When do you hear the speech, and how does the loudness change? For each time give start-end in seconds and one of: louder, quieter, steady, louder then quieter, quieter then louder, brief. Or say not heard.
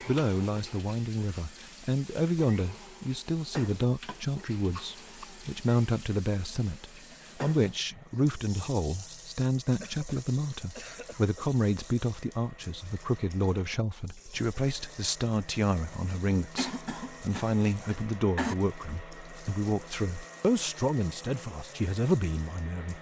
0.1-22.9 steady.